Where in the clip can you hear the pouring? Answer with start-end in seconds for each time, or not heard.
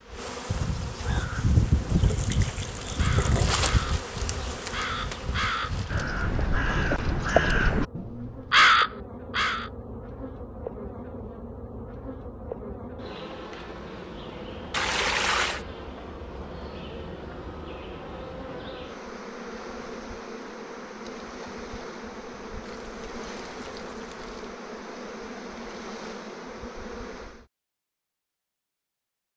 1.9-3.8, 14.7-15.7, 22.6-24.5.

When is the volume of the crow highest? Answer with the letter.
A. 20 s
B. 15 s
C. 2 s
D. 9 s
D.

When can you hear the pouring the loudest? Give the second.
15 s.